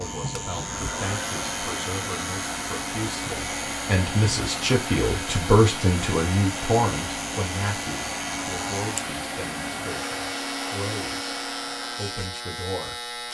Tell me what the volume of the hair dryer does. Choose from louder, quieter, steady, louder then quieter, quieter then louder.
steady.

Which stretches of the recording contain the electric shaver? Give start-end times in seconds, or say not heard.
0.0-13.2.